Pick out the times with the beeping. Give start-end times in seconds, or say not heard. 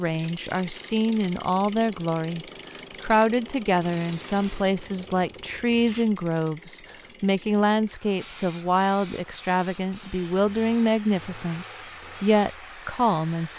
not heard.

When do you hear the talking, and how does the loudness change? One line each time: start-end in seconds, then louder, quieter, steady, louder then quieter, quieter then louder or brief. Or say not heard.
0.0-13.5 steady.